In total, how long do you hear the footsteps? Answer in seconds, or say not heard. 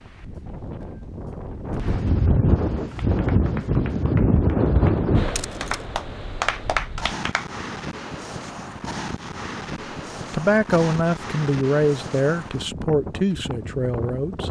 not heard.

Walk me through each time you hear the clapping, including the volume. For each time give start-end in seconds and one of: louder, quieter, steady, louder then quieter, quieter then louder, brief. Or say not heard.
2.8-7.5 louder.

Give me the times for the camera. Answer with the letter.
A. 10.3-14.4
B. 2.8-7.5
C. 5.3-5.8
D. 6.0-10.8
C.